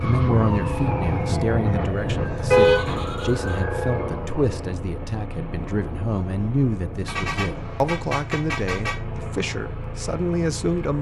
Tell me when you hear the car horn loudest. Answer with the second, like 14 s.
3 s.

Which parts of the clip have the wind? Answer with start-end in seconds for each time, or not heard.
0.0-7.9.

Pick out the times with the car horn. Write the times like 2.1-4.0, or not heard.
2.5-3.5, 7.0-8.9.